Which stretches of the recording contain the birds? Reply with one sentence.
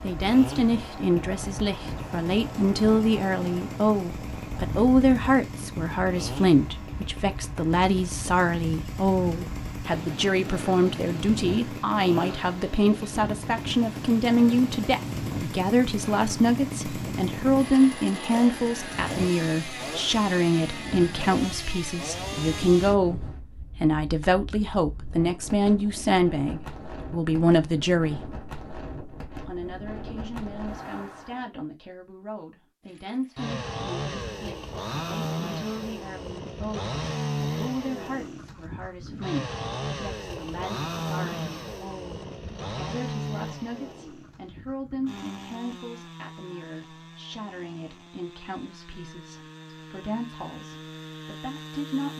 The birds can't be heard in this clip.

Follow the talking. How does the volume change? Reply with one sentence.
The volume of the talking goes down.